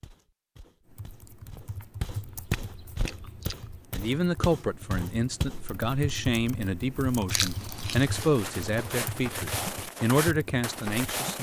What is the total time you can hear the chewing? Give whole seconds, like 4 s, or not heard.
3 s.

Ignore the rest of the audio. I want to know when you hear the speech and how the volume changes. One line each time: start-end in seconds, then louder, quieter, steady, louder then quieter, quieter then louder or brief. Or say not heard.
3.9-11.3 steady.